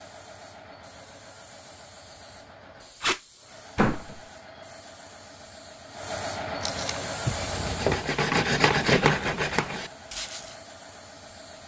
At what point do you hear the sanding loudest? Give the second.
9 s.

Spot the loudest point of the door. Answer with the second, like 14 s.
4 s.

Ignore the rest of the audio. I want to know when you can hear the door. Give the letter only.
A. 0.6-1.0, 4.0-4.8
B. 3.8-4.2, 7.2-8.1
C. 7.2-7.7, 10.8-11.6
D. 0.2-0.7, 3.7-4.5
B.